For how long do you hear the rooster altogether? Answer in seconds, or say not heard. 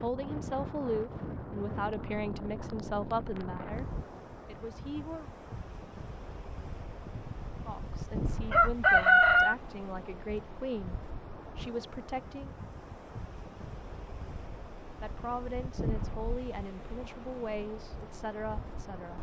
3 s.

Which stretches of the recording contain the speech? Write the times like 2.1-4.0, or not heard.
0.0-5.2, 7.7-12.6, 15.0-19.1.